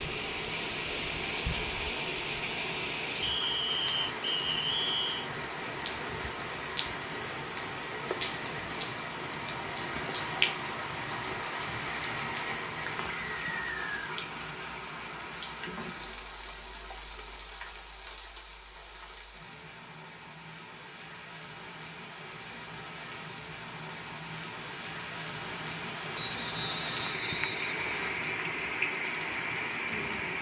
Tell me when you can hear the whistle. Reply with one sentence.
The whistle can be heard from 3.2 to 5.3 s, from 13.1 to 14.1 s and from 26.1 to 28.1 s.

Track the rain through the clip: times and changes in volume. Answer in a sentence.
You can hear the rain from 0.0 to 30.3 s, getting quieter then louder.